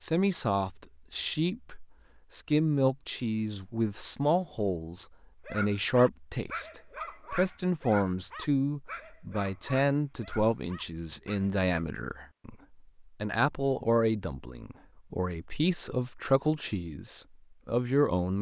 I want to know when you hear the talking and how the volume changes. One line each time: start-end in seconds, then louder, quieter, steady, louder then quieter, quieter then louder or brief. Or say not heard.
0.0-18.3 steady.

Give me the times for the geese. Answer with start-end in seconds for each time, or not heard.
not heard.